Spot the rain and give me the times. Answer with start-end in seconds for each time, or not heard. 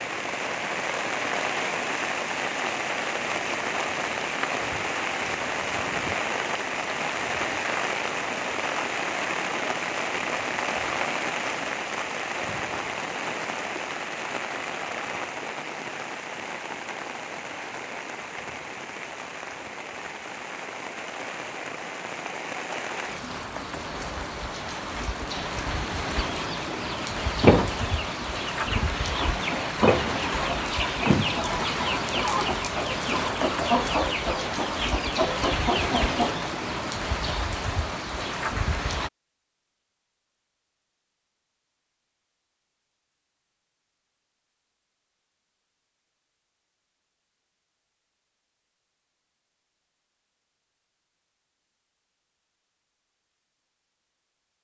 0.0-39.1.